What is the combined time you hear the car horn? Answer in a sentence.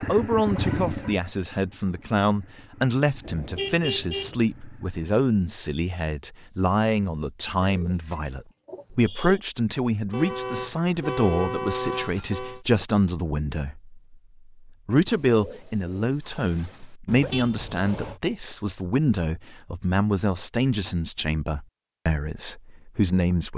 The car horn can be heard for 5 seconds in total.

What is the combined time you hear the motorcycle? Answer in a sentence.
The motorcycle can be heard for 5 seconds in total.